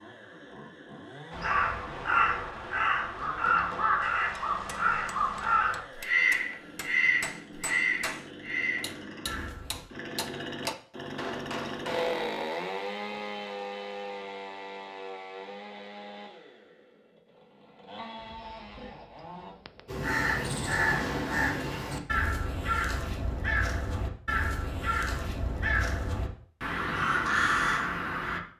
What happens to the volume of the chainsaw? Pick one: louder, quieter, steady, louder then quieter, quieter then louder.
louder then quieter.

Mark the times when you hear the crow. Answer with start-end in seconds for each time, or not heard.
1.3-9.8, 19.9-28.4.